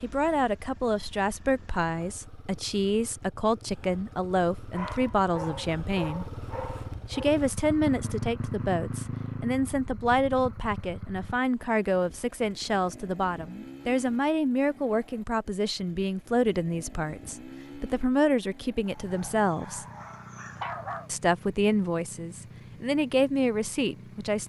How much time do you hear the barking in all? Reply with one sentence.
You can hear the barking for 5 seconds altogether.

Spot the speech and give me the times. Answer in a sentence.
You can hear the speech from 0.0 to 6.2 s, from 7.1 to 19.9 s and from 21.1 to 24.4 s.